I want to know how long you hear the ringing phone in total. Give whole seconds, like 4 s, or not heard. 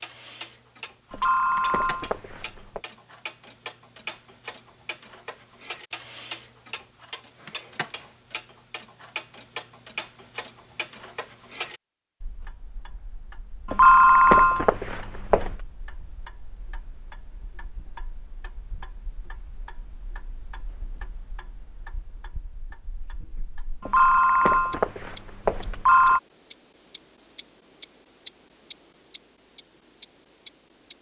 6 s.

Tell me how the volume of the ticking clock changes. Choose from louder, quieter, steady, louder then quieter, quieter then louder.
quieter then louder.